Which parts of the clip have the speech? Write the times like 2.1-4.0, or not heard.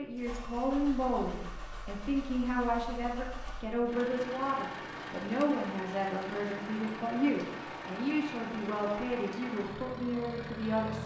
0.0-11.0.